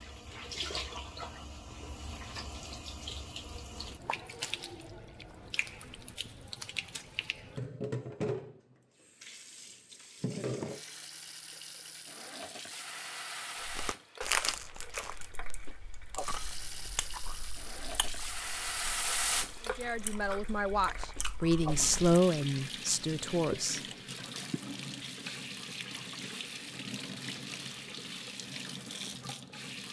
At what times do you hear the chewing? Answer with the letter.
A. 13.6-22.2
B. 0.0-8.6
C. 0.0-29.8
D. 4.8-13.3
A.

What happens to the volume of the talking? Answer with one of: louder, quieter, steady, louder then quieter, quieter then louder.
louder then quieter.